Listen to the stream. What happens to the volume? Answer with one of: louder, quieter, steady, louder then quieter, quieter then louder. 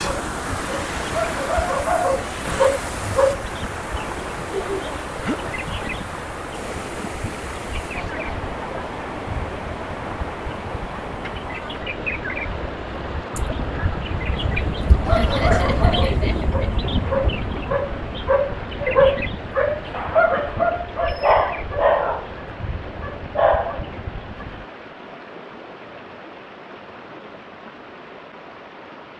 quieter.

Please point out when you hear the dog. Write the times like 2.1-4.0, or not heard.
0.0-3.5, 15.1-24.4.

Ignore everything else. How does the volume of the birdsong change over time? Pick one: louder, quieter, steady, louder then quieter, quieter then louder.
louder then quieter.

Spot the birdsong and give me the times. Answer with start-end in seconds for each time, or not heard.
0.1-24.6.